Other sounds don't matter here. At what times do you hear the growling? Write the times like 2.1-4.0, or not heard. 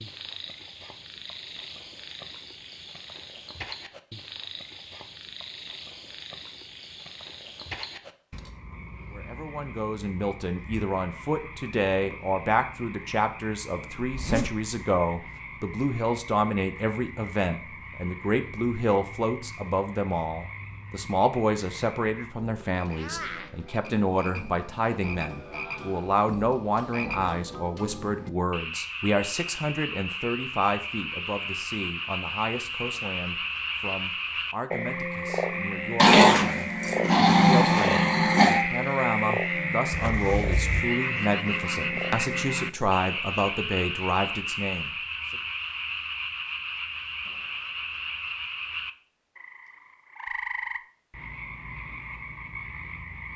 36.0-38.6.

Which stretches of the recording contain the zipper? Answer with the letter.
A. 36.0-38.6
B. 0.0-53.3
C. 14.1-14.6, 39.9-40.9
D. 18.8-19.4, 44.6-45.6
C.